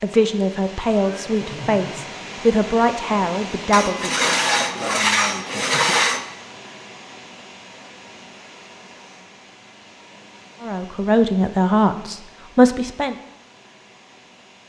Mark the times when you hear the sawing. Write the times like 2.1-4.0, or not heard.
3.7-6.2.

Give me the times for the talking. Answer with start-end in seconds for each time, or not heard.
0.0-4.3, 10.6-13.2.